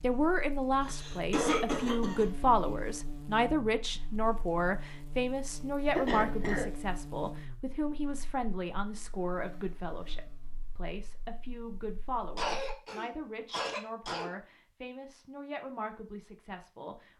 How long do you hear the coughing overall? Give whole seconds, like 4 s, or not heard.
4 s.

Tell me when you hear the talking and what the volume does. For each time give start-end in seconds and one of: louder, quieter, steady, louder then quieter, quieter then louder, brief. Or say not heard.
0.0-17.1 quieter.